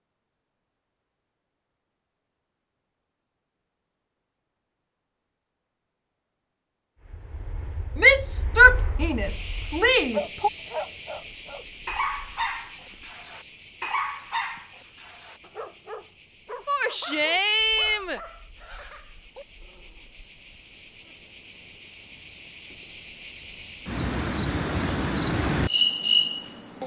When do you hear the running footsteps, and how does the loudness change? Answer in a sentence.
You can't hear the running footsteps here.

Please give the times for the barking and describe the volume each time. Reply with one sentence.
The barking can be heard from 10.1 to 20.1 s, getting quieter.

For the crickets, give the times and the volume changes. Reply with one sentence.
You can hear the crickets from 9.2 to 26.8 s, getting quieter then louder.